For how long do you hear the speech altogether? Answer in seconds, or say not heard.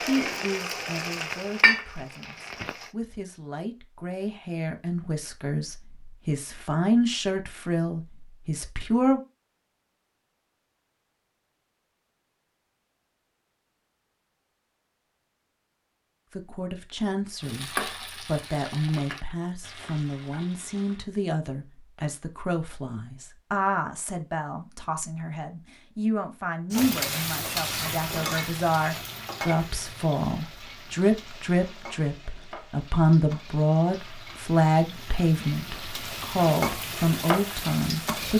31 s.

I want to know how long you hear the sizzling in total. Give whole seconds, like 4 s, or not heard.
18 s.